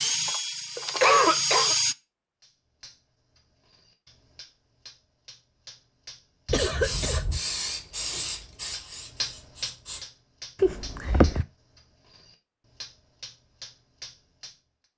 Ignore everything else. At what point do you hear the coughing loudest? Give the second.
1 s.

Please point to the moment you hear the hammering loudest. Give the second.
9 s.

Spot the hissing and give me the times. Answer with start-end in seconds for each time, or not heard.
6.5-10.1.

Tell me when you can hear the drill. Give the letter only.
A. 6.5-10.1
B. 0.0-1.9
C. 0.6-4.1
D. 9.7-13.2
B.